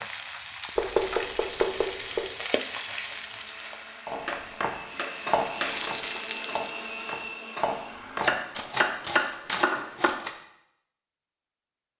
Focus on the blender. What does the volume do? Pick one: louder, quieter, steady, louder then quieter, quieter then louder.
louder.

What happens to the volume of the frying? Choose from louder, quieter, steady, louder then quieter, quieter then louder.
quieter then louder.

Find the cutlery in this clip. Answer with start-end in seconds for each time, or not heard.
4.0-10.3.